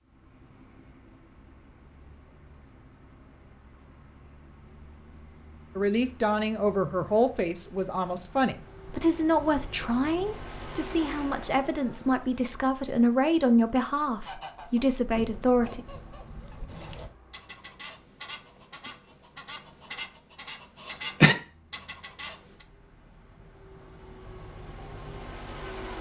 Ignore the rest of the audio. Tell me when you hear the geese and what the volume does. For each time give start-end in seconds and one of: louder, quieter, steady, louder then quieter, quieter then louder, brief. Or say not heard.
14.2-22.6 louder.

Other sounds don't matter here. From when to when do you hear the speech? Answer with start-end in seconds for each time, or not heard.
5.8-15.8.